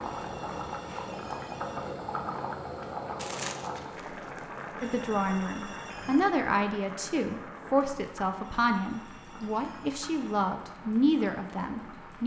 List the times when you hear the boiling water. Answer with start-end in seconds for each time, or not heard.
0.0-12.2.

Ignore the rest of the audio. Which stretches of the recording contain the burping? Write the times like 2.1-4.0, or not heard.
not heard.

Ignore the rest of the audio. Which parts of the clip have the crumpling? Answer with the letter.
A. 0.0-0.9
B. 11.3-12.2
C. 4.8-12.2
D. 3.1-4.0
D.